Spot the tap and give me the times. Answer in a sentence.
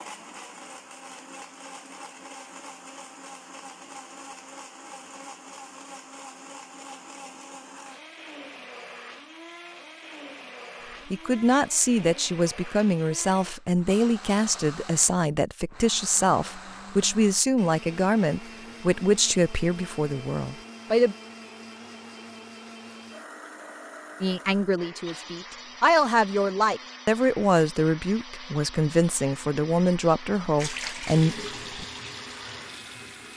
You can hear the tap from 30.6 to 33.3 s.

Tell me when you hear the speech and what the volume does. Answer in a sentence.
The speech can be heard from 11.1 to 21.1 s, at a steady volume; and from 24.2 to 31.9 s, at a steady volume.